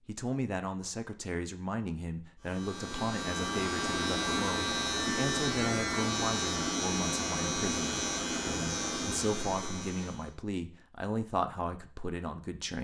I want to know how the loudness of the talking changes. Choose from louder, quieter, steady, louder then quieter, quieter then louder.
steady.